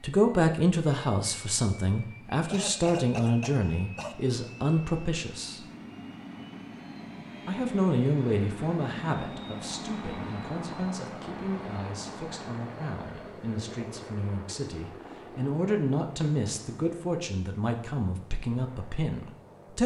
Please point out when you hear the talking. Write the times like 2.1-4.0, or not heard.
0.0-5.7, 7.5-19.8.